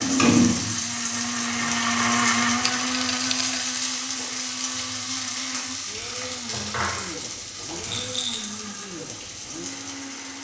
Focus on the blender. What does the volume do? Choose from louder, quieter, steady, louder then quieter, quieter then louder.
quieter.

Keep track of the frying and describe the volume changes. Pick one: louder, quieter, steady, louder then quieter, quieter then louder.
quieter.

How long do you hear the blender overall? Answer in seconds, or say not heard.
10 s.